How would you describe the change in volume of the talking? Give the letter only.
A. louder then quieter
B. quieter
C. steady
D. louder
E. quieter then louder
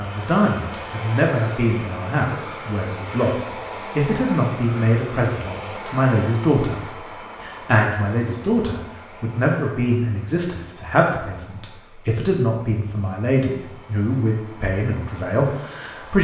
C.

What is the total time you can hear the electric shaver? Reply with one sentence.
The electric shaver can't be heard in this clip.